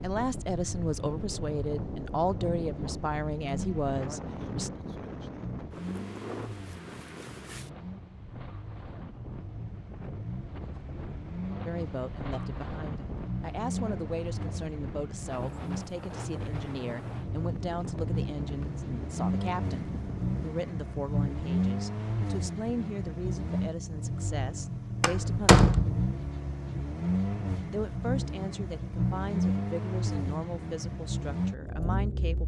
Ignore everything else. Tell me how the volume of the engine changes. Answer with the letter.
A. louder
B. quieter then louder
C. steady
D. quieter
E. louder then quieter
A.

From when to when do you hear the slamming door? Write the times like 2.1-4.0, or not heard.
25.0-26.1.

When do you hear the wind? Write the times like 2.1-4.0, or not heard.
0.0-20.6.